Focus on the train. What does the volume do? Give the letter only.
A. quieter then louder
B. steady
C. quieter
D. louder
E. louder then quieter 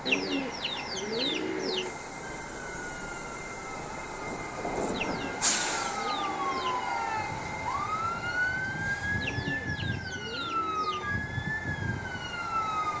E.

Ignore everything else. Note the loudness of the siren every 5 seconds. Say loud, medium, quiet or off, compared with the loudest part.
quiet, loud, loud.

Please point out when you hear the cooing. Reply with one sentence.
You can hear the cooing from 0.1 to 1.9 s, from 4.9 to 6.9 s and from 9.2 to 11.2 s.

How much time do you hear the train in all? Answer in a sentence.
You can hear the train for 13 seconds altogether.